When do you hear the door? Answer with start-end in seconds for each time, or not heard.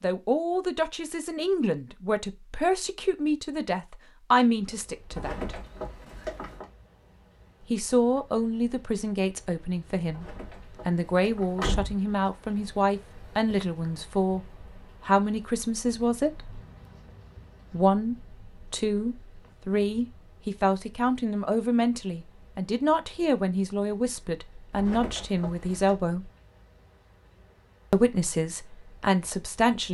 5.1-6.7, 10.1-11.9, 24.7-25.9.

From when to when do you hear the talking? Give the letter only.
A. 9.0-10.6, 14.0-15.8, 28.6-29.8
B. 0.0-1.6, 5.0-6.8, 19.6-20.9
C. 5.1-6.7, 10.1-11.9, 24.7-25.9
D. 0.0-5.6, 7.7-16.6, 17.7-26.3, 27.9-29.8
D.